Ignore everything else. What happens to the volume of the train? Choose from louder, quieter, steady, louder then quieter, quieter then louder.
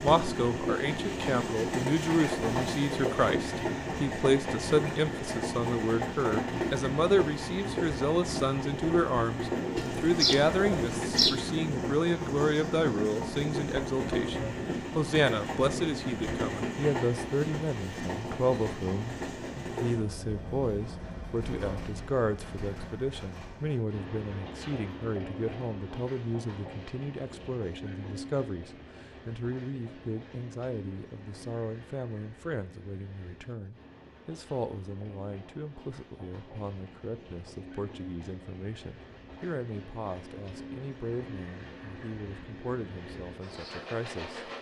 quieter.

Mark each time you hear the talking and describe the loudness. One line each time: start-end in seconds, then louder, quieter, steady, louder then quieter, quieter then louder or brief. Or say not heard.
0.0-44.5 quieter.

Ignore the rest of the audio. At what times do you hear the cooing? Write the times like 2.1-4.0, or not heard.
9.8-11.4.